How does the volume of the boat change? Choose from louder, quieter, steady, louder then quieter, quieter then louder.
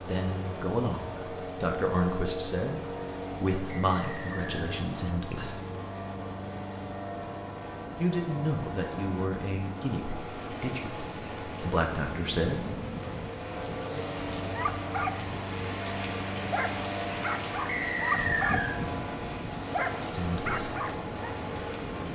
steady.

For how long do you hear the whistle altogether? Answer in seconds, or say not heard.
2 s.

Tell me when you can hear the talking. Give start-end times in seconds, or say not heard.
0.0-5.7, 8.0-12.7, 20.1-20.8.